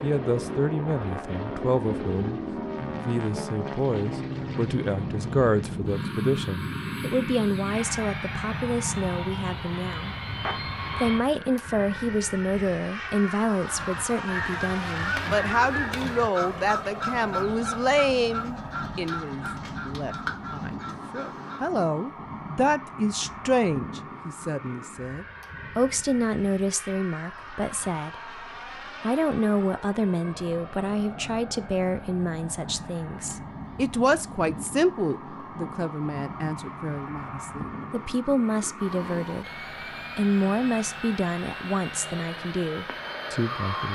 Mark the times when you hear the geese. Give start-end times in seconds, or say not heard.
13.8-21.7.